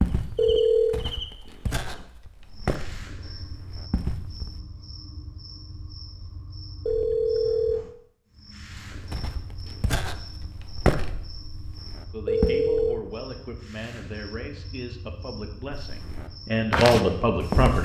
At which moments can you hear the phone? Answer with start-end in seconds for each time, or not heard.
0.3-1.0, 6.8-7.8, 12.2-13.0.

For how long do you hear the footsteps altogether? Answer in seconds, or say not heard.
10 s.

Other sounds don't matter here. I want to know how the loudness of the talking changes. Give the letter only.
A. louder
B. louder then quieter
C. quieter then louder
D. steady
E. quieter
A.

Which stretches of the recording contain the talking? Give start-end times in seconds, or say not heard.
12.1-17.7.